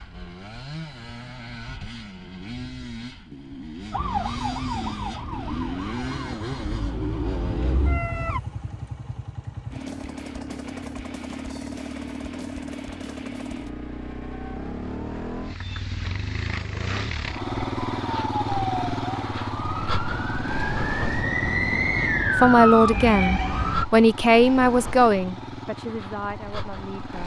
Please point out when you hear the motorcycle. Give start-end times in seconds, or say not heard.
0.0-27.2.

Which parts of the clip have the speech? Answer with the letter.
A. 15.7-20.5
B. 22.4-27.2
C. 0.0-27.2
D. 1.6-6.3
B.